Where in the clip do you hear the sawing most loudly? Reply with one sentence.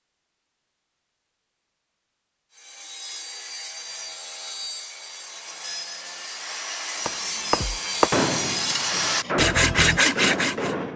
The loudest moment of the sawing is at 10 seconds.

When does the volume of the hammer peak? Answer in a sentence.
The volume of the hammer peaks at 8 seconds.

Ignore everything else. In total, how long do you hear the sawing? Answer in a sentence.
The sawing can be heard for 8 seconds in total.